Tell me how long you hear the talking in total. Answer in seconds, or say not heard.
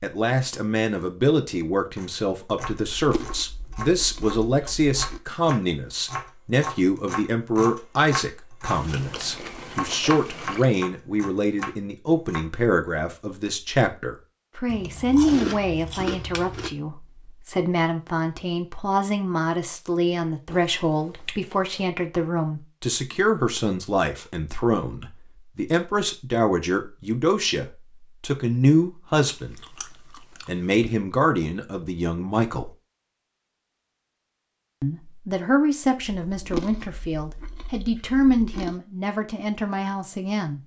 38 s.